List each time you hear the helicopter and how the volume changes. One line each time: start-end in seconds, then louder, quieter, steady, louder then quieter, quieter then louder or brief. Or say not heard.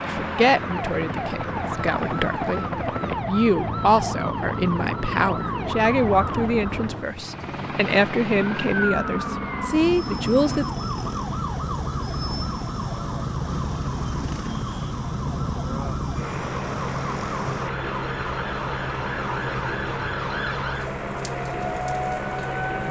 0.0-22.8 steady.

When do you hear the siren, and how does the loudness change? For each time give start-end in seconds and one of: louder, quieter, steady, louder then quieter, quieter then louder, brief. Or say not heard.
0.0-22.8 steady.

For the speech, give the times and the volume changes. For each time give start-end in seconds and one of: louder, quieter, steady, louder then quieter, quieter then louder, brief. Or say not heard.
0.0-10.7 steady.